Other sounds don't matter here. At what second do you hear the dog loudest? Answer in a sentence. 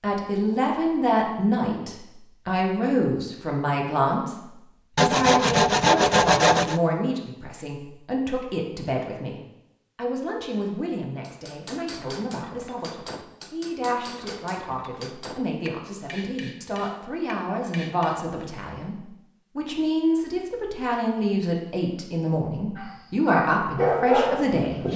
The loudest moment of the dog is at 24 seconds.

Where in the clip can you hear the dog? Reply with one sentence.
The dog can be heard from 22.8 to 24.9 s.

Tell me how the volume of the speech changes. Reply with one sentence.
The volume of the speech goes down, then up.